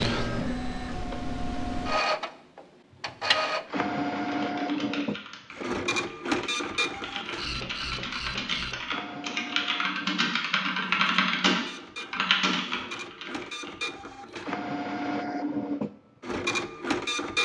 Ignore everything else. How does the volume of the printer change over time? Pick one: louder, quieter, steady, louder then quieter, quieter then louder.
quieter then louder.